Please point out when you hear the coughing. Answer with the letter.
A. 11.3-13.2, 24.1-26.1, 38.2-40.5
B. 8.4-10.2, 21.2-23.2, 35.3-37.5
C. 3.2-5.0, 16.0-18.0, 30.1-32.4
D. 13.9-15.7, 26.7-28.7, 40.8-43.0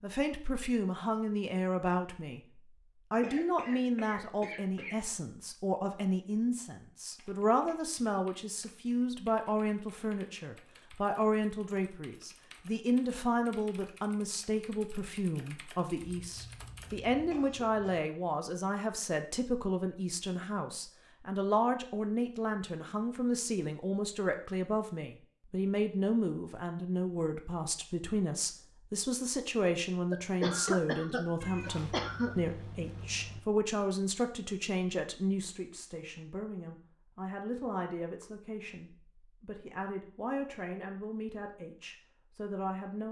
C.